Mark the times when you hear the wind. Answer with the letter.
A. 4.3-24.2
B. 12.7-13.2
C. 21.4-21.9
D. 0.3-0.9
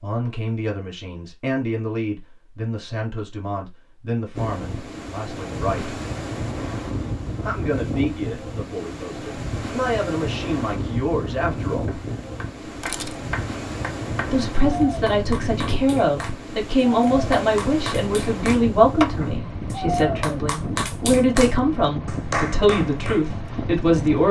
A.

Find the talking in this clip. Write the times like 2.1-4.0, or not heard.
0.0-6.0, 7.4-11.9, 14.3-24.2.